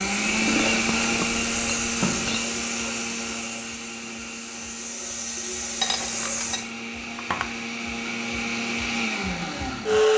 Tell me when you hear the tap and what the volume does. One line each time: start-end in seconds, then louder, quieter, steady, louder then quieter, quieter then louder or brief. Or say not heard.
0.0-6.7 quieter then louder.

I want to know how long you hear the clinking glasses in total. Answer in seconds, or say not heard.
4 s.